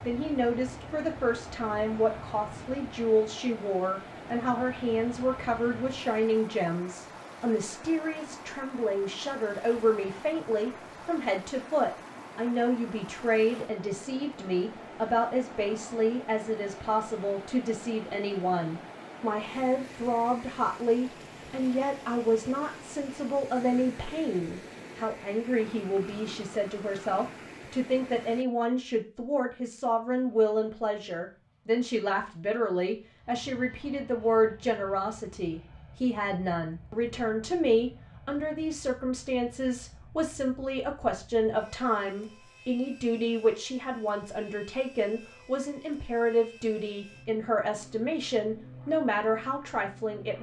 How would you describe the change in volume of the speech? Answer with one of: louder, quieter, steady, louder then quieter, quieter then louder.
steady.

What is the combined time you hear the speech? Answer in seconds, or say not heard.
50 s.